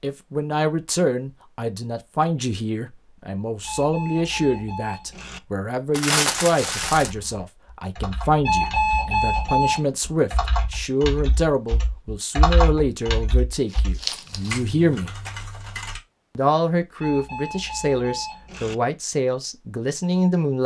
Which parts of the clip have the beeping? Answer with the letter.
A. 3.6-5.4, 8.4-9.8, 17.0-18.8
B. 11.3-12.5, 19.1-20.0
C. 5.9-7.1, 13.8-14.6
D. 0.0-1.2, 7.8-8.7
A.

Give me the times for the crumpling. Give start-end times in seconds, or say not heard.
5.9-7.1, 13.8-14.6.